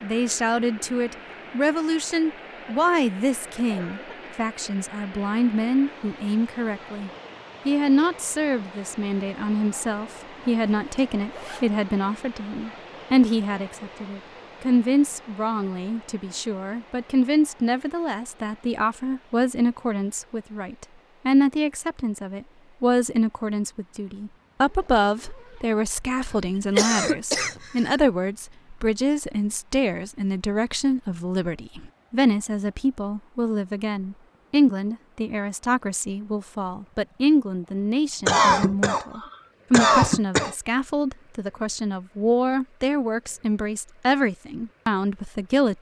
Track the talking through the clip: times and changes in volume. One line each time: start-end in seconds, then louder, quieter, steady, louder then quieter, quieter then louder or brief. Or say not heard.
0.0-45.7 steady.